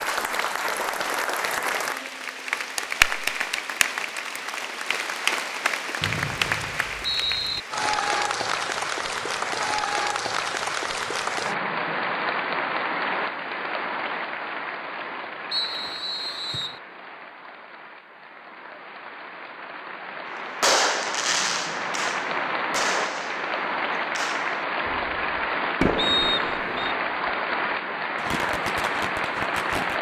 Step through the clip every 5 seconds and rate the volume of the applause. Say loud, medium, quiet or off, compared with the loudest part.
loud, loud, loud, quiet, loud, loud.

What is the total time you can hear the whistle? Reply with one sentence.
The whistle can be heard for 4 seconds in total.